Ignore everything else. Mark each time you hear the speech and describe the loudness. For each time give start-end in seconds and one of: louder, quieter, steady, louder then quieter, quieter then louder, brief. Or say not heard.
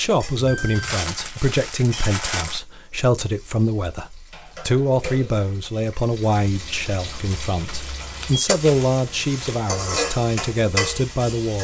0.0-11.6 steady.